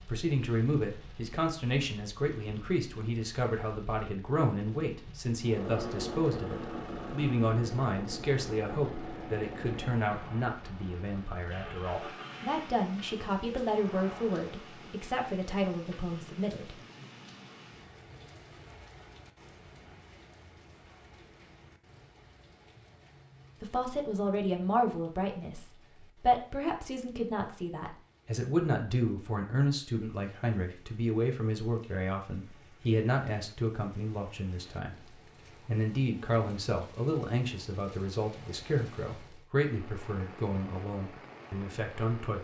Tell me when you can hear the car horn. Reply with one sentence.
The car horn can't be heard in this clip.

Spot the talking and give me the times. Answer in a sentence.
You can hear the talking from 0.0 to 16.8 s and from 23.6 to 42.3 s.